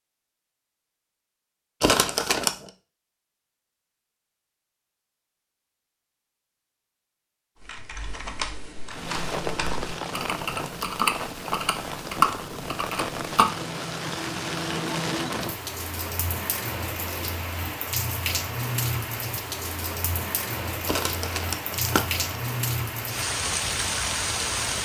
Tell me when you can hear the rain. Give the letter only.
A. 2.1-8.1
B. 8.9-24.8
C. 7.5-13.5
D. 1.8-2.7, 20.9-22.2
B.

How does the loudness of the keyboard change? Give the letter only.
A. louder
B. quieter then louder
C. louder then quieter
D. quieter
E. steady
A.